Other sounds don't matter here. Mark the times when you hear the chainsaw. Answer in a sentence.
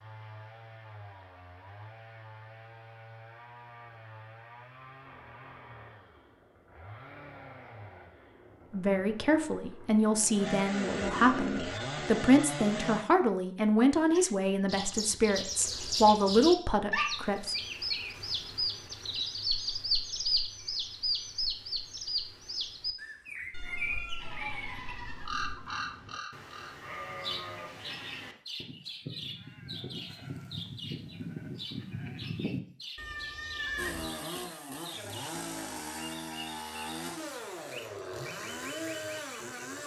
You can hear the chainsaw from 0.0 to 13.1 s and from 33.8 to 39.8 s.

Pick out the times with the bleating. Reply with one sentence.
The bleating can be heard from 23.6 to 34.1 s.